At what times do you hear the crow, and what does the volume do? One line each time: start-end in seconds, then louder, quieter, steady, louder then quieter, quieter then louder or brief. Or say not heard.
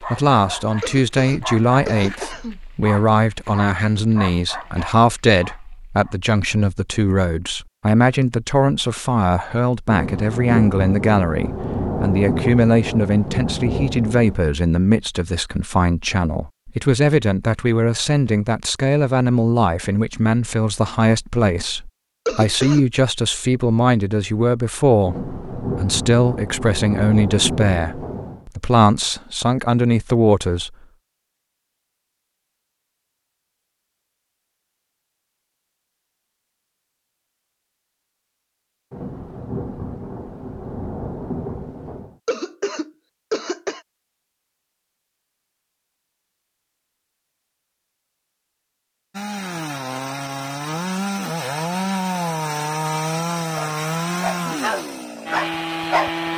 not heard.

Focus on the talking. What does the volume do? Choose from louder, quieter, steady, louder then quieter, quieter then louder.
steady.